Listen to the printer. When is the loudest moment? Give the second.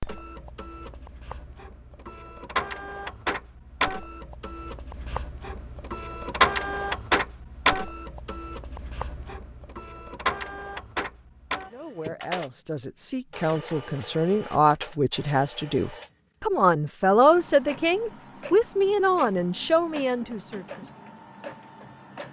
7 s.